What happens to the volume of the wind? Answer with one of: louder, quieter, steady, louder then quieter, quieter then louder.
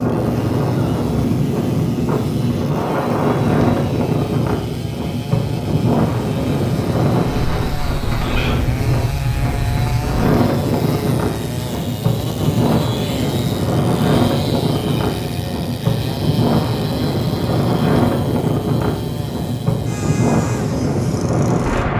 steady.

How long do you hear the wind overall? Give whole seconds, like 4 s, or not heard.
22 s.